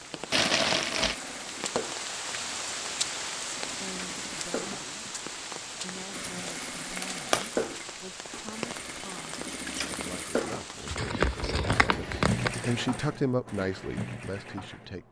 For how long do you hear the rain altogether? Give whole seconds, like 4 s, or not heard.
11 s.